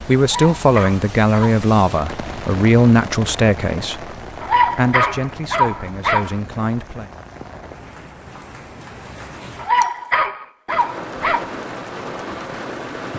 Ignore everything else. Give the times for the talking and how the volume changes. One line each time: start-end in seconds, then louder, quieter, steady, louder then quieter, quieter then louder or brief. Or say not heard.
0.1-7.1 quieter.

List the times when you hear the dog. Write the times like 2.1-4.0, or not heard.
0.2-1.6, 4.4-6.3, 9.6-11.5.